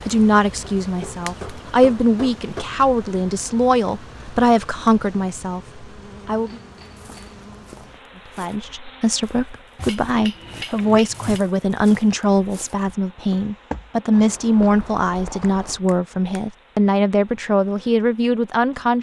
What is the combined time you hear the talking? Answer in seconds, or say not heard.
17 s.